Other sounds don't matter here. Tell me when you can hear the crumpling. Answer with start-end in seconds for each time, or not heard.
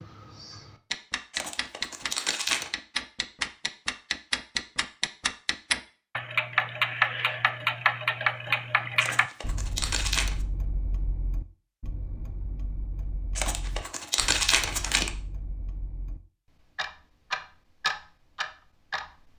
1.3-2.7, 9.0-10.3, 13.3-15.1.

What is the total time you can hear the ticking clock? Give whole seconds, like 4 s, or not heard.
19 s.